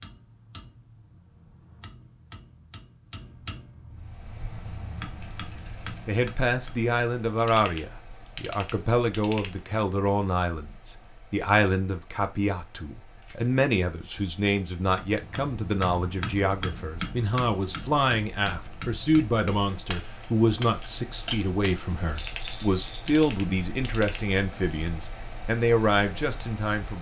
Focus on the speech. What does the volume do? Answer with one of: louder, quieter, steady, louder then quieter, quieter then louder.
steady.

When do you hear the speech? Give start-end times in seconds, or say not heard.
6.0-26.9.